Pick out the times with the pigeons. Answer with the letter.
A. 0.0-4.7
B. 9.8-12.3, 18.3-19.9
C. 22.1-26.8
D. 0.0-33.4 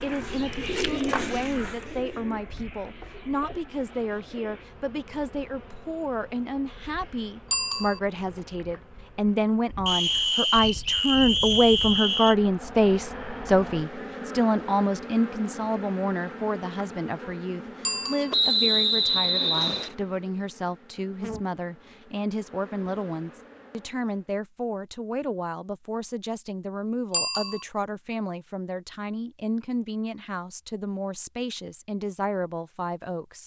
A.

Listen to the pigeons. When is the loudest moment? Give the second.
1 s.